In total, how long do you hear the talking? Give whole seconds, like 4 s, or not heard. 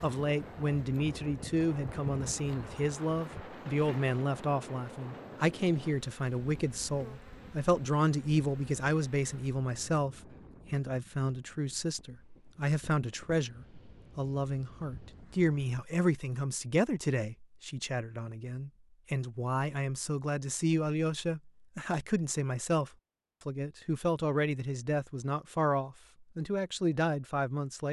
28 s.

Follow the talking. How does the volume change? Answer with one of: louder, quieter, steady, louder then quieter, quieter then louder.
steady.